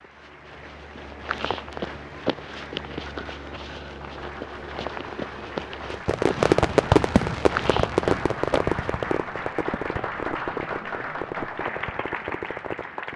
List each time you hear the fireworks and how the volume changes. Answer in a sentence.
The fireworks can be heard from 5.9 to 13.1 s, getting quieter.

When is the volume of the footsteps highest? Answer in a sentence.
The loudest moment of the footsteps is at 8 seconds.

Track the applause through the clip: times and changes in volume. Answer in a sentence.
The applause can be heard from 0.0 to 13.1 s, getting louder.